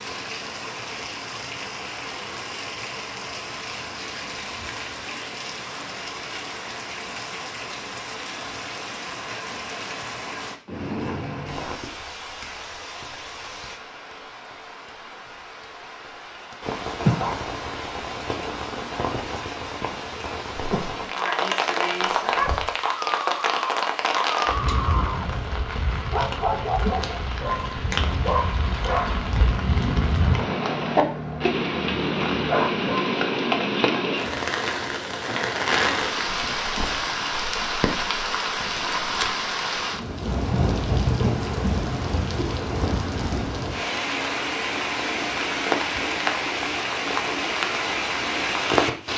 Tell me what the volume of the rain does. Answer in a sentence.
The loudness of the rain goes up.